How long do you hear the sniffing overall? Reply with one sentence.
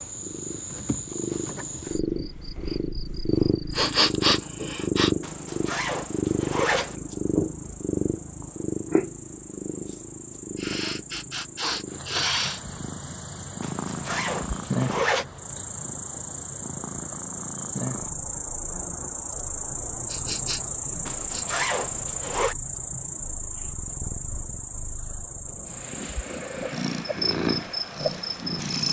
You can hear the sniffing for 5 seconds altogether.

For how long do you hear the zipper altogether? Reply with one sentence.
You can hear the zipper for 5 seconds altogether.